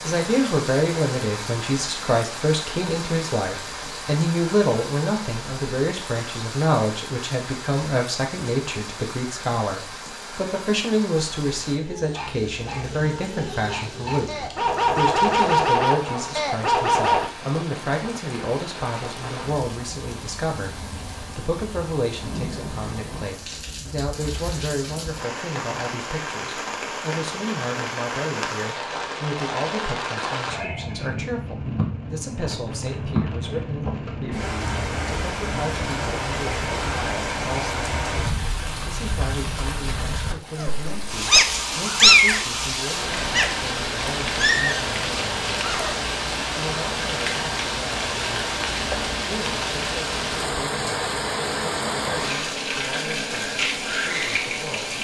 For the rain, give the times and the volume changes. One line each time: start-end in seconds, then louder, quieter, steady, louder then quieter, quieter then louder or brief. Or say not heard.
0.0-54.9 louder.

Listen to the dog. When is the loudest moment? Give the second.
42 s.